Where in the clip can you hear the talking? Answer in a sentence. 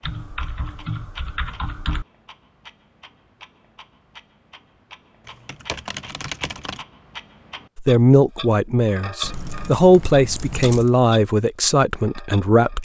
You can hear the talking from 7.8 to 12.8 s.